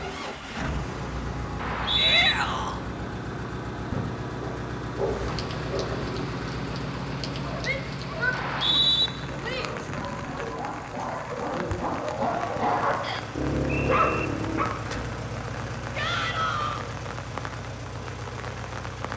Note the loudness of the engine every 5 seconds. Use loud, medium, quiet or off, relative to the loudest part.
loud, loud, medium, loud.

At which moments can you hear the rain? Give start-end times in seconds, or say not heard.
5.0-19.1.